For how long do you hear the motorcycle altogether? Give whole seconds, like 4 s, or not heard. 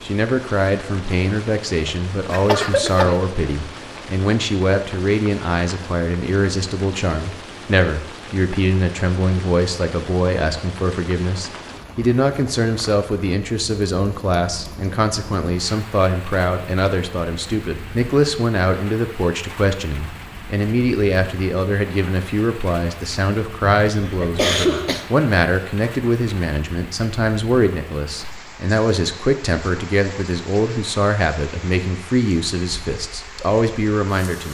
not heard.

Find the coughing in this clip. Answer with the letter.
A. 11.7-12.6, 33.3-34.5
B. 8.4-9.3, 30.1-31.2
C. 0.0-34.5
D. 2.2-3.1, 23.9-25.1
D.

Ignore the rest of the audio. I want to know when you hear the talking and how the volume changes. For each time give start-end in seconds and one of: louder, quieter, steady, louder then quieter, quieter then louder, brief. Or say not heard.
0.0-34.5 steady.